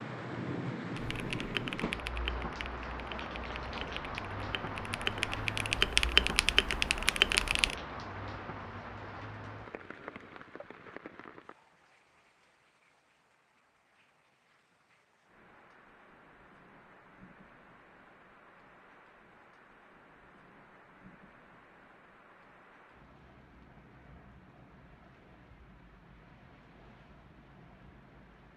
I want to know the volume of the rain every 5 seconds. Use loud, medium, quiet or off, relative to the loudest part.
loud, loud, quiet, quiet, quiet, quiet.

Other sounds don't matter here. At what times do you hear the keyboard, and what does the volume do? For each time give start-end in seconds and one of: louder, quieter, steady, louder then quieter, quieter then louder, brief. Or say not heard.
0.9-7.8 quieter then louder.